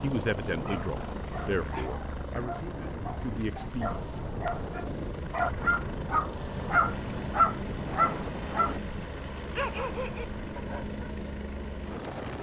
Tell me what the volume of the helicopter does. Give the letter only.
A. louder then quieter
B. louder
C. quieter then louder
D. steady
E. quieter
D.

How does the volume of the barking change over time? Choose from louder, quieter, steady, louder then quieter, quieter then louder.
louder then quieter.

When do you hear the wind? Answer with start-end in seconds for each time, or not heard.
0.0-8.8.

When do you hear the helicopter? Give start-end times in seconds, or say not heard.
0.0-12.3.